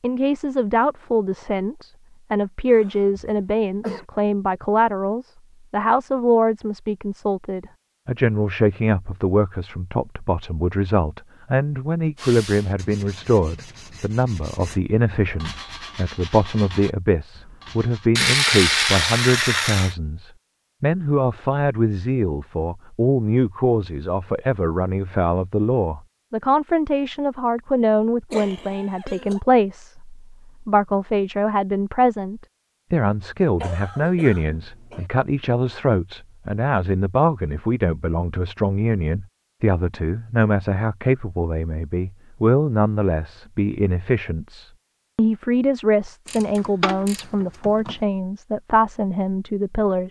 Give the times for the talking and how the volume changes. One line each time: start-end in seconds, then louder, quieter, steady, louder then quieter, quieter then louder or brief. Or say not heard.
0.0-50.0 steady.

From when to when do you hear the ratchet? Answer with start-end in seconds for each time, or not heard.
18.1-19.9, 46.2-48.0.